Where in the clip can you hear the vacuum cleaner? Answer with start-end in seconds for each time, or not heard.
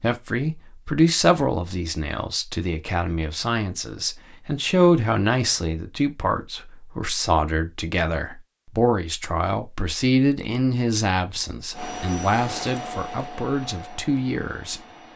11.7-15.1.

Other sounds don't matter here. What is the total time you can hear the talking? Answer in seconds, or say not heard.
15 s.